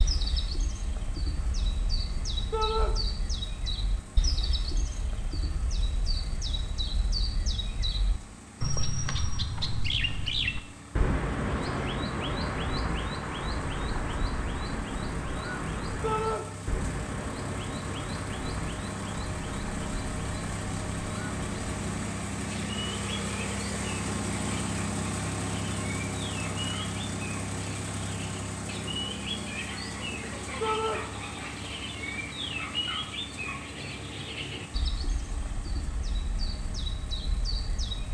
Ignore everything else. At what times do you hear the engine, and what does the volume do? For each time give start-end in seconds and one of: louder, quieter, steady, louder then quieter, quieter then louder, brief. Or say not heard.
0.0-38.1 louder then quieter.